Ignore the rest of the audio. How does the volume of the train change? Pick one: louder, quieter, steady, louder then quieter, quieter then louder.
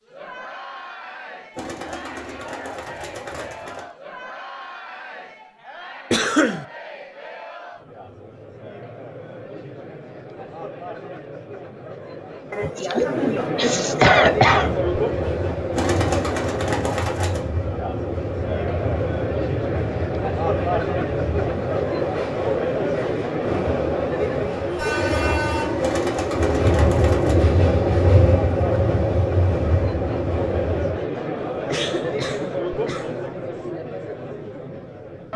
louder.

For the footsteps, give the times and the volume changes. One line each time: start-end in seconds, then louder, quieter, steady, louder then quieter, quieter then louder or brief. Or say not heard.
not heard.